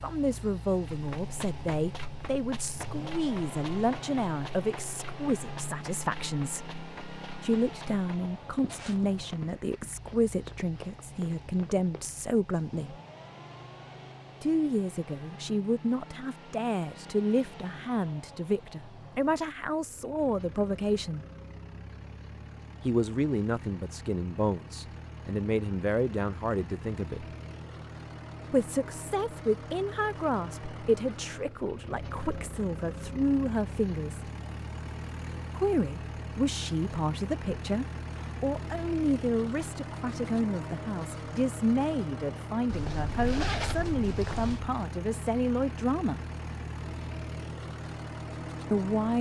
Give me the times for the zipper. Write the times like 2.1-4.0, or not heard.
8.7-9.2, 42.6-44.6.